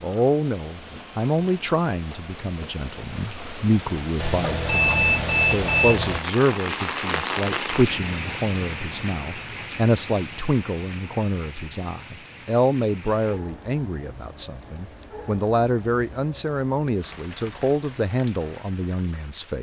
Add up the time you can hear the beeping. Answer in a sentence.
The beeping can be heard for 2 seconds in total.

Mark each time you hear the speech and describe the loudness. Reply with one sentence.
The speech can be heard from 0.0 to 19.5 s, at a steady volume.